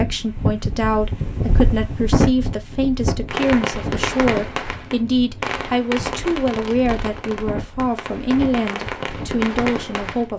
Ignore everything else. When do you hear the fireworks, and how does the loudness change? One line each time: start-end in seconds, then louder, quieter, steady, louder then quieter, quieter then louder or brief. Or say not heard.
3.2-10.3 quieter then louder.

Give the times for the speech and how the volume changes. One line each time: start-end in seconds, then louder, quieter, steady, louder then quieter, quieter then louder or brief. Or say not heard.
0.0-10.3 steady.